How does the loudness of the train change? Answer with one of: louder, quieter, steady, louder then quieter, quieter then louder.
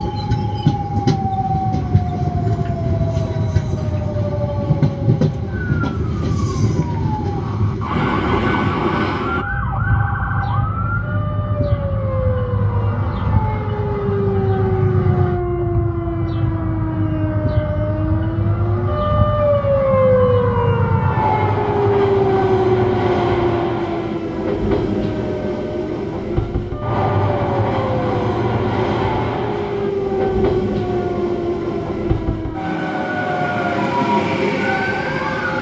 steady.